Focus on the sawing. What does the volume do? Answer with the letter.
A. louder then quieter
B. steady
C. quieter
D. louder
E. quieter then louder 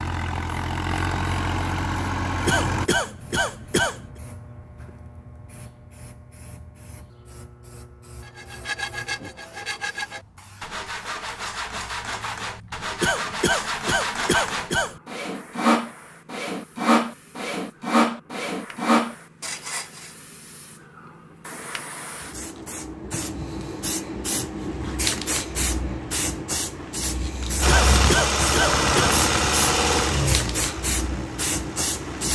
D.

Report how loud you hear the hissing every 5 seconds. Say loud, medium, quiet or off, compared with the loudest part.
quiet, quiet, quiet, quiet, medium, loud, loud.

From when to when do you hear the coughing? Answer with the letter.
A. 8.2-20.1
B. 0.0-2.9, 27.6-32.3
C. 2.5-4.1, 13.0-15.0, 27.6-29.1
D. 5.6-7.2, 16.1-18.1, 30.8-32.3
C.